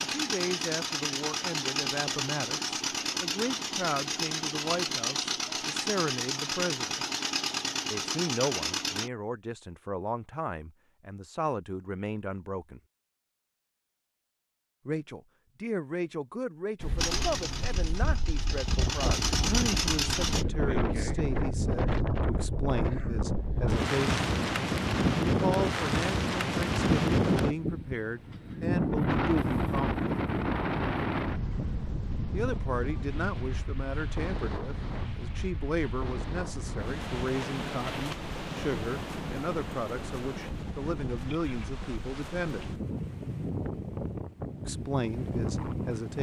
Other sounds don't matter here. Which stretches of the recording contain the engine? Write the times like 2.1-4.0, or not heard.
0.0-9.1, 16.9-20.4.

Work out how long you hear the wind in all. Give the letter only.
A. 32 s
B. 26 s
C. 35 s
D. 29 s
D.